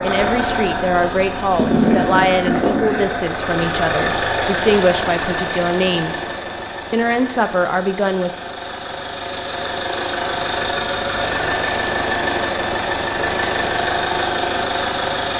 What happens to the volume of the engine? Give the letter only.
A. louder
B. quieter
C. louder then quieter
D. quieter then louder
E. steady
D.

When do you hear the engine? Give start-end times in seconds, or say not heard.
0.0-15.3.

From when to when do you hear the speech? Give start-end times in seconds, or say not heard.
0.0-6.3, 6.9-8.4.